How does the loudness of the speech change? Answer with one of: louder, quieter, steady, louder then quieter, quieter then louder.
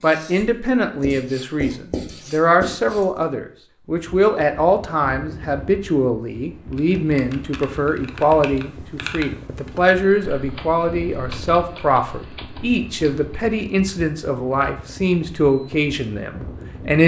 steady.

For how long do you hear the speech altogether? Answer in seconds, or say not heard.
17 s.